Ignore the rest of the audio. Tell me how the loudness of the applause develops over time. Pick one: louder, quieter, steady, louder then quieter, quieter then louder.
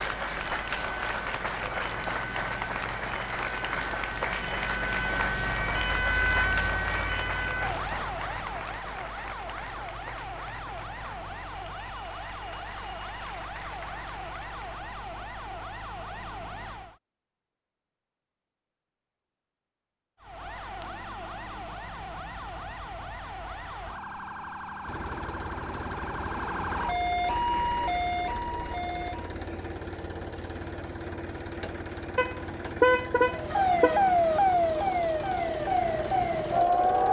quieter.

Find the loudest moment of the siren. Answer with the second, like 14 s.
34 s.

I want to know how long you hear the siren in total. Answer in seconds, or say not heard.
30 s.